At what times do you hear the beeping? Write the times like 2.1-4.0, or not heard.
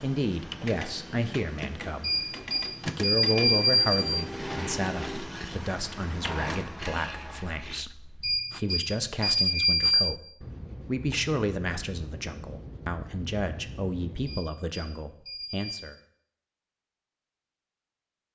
2.0-4.2, 8.2-10.1, 14.2-15.8.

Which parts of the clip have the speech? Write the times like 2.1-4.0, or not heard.
0.0-15.9.